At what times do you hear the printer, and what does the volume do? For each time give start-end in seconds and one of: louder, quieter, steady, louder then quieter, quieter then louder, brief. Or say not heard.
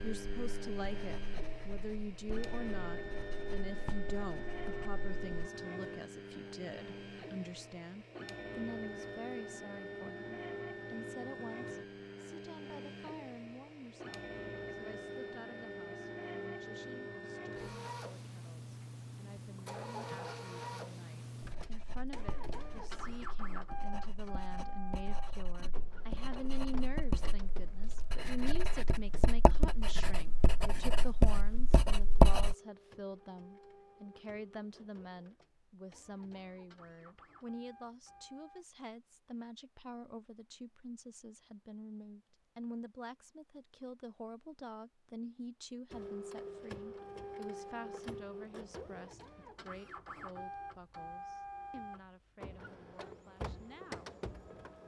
0.0-38.6 quieter
45.9-54.8 steady.